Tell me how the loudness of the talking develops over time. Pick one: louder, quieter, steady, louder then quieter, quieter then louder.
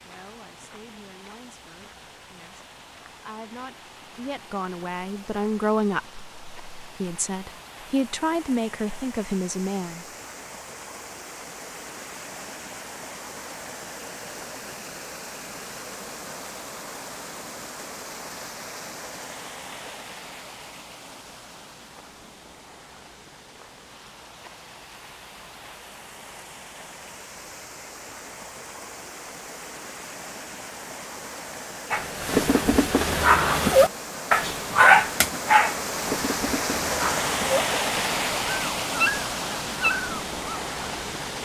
louder.